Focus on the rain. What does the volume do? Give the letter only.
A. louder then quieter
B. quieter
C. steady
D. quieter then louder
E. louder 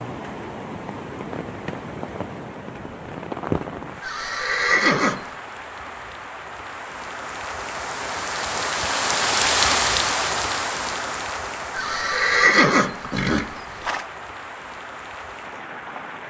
A.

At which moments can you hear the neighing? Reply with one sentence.
You can hear the neighing from 4.0 to 5.3 s and from 11.8 to 14.1 s.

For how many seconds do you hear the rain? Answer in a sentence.
You can hear the rain for 16 seconds altogether.